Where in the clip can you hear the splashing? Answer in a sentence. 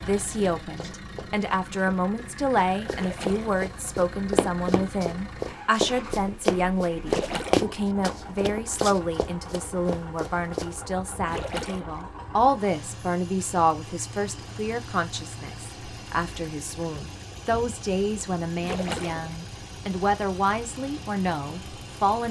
You can hear the splashing from 2.9 to 3.6 s, from 7.0 to 7.7 s, from 11.2 to 12.0 s and from 18.6 to 19.4 s.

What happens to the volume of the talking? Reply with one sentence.
The volume of the talking stays about the same.